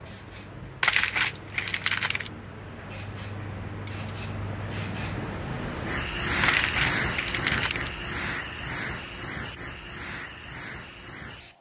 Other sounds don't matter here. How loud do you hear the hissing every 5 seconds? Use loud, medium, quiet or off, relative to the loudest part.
medium, loud, medium.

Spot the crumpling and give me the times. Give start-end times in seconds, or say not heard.
0.8-2.3, 6.4-7.9.